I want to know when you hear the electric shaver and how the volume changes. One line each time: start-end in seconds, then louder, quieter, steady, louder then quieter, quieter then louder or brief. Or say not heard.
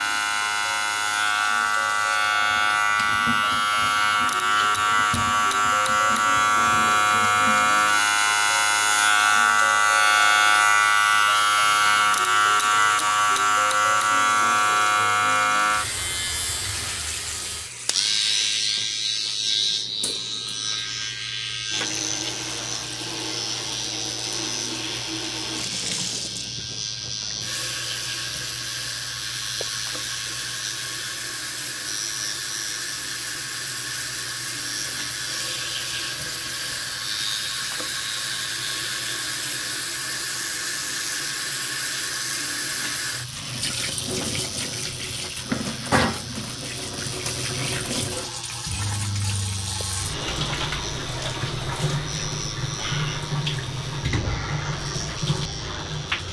0.0-56.2 quieter.